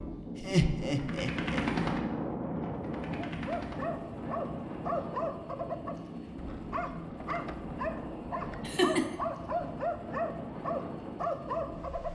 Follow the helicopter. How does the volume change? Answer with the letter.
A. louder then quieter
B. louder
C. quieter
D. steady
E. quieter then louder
C.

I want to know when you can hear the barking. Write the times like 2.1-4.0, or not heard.
3.1-12.0.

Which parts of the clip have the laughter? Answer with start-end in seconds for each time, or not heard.
0.3-1.6, 8.6-9.2.